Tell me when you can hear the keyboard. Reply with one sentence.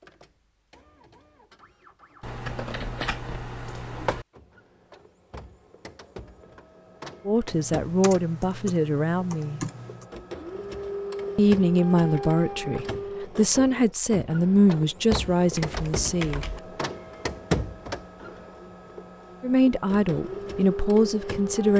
You can hear the keyboard from 2.2 to 4.2 s, from 7.5 to 10.1 s and from 15.1 to 16.6 s.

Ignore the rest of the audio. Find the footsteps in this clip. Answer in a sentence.
The footsteps can't be heard in this clip.